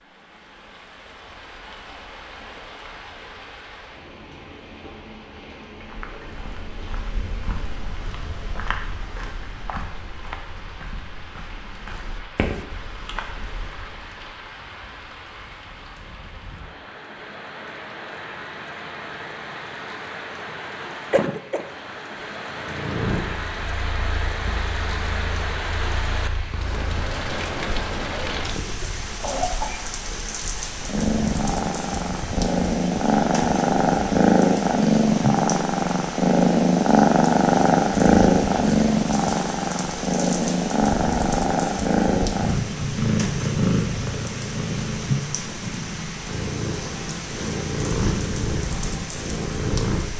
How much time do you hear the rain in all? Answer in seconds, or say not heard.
50 s.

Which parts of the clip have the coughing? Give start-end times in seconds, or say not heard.
21.1-21.6, 29.2-29.9.